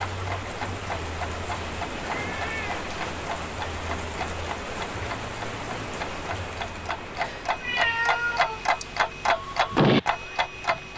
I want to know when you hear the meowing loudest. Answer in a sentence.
The volume of the meowing peaks at 8 seconds.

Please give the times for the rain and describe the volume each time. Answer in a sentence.
The rain can be heard from 0.0 to 10.9 s, getting quieter.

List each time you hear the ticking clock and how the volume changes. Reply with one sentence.
The ticking clock can be heard from 0.0 to 10.9 s, getting louder.